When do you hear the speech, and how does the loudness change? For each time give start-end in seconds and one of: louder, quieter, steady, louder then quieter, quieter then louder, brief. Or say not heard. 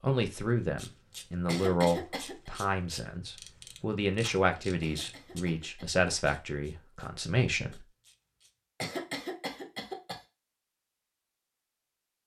0.0-7.8 steady.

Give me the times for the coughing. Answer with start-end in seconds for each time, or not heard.
1.4-2.5, 4.8-6.0, 8.8-10.2.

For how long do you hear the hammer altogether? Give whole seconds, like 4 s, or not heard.
not heard.